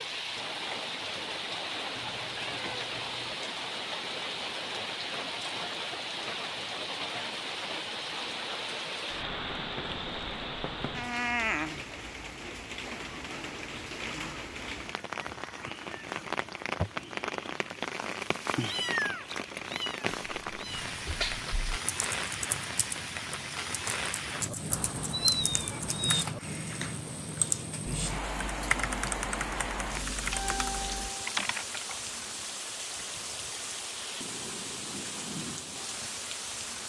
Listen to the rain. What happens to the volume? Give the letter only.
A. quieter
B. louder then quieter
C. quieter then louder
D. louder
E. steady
E.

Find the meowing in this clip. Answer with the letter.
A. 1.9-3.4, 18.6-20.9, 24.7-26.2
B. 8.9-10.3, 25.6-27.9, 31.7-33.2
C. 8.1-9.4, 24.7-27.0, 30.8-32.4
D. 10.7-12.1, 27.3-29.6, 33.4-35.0
A.